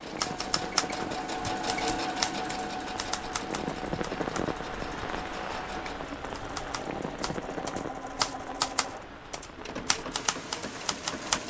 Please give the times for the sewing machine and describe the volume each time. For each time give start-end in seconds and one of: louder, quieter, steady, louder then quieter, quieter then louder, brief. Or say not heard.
0.0-11.4 quieter.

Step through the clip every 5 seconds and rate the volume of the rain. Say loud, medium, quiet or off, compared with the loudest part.
loud, loud, medium.